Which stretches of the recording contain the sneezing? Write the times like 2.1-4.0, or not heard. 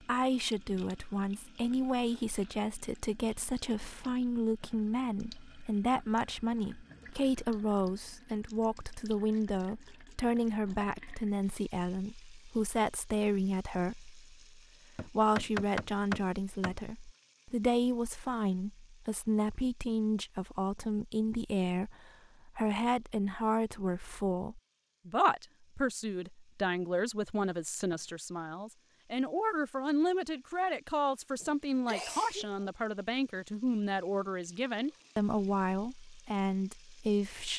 31.4-32.8.